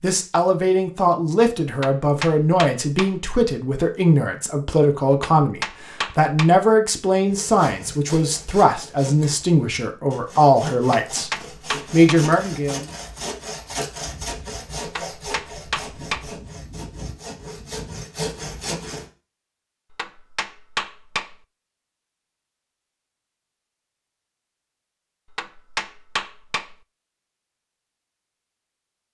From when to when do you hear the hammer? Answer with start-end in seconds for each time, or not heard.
1.7-3.2, 5.2-6.6, 10.8-12.3, 14.8-16.4, 19.9-21.4, 25.3-26.8.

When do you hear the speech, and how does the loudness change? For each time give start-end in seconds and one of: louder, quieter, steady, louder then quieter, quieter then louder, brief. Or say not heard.
0.0-11.3 steady
11.9-12.8 brief.